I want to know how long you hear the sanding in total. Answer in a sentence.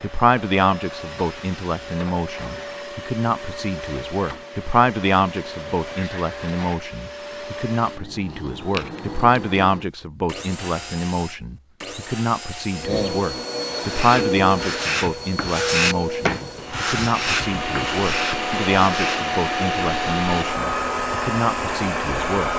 You can hear the sanding for 6 seconds altogether.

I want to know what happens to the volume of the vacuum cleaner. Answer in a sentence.
The volume of the vacuum cleaner goes up.